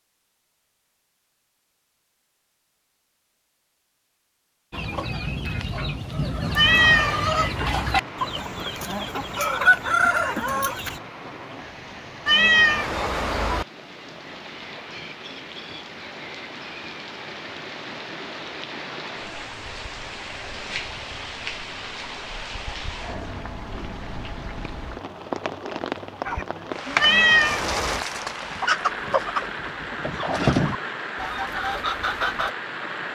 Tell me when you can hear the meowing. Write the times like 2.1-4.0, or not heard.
6.5-7.3, 12.2-13.7, 27.0-28.1.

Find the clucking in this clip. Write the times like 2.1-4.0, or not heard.
4.7-11.0, 26.2-32.5.